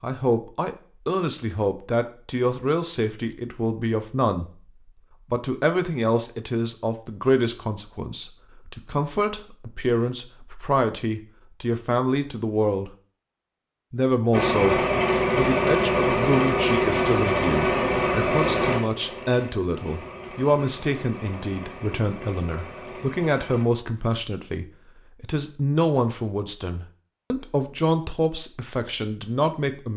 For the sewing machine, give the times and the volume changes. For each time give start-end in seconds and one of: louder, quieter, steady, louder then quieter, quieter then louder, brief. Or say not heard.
14.3-23.6 quieter.